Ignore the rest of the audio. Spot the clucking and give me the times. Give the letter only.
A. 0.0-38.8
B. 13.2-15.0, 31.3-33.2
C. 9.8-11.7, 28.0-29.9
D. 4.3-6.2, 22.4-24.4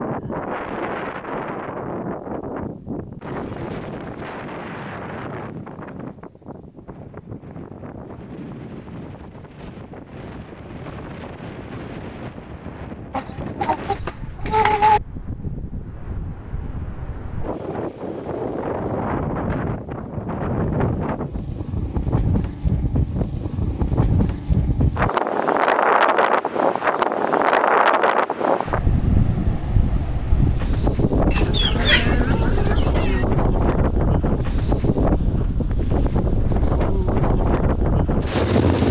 B.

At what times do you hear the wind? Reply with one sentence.
The wind can be heard from 0.0 to 38.8 s.